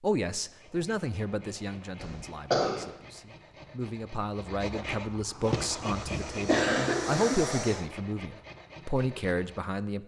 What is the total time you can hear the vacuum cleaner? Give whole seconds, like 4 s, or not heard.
2 s.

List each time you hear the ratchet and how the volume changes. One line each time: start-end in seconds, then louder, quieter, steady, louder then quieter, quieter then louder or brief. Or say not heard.
not heard.